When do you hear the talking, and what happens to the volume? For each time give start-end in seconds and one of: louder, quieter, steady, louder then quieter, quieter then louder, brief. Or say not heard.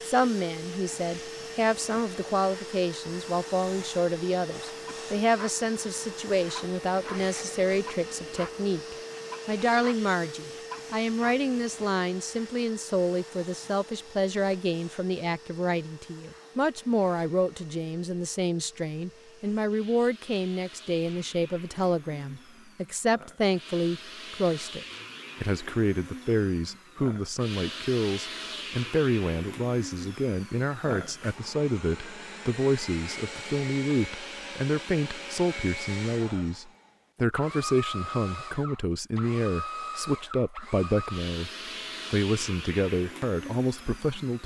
0.0-41.5 steady
42.1-44.4 brief.